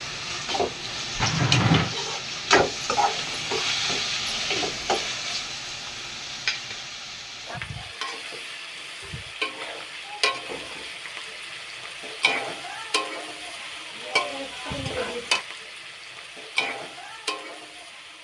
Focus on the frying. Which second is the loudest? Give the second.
3 s.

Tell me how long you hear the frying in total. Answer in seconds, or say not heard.
18 s.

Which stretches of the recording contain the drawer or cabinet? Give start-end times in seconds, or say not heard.
1.2-1.9.